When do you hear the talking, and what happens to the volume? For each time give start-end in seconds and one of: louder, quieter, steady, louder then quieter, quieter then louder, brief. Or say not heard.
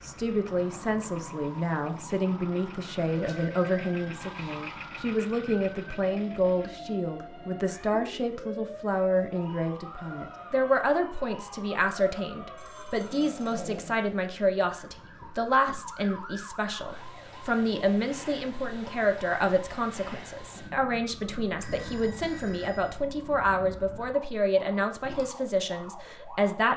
0.0-26.7 steady.